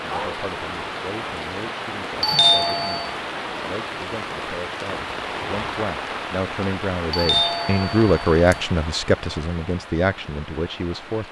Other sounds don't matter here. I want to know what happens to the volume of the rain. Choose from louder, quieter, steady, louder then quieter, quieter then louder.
quieter.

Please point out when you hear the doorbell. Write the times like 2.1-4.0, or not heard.
2.2-3.1, 7.1-8.7.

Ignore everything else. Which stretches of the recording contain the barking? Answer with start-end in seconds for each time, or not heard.
0.1-0.5.